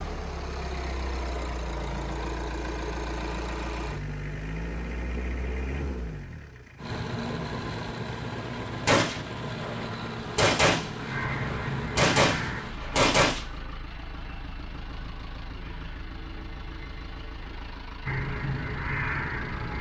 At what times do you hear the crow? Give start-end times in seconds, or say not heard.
11.1-12.7, 18.1-19.7.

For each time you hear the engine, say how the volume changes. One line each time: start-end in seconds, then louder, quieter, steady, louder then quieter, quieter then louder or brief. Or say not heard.
0.0-19.7 quieter.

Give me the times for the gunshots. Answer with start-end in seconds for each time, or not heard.
8.8-13.4.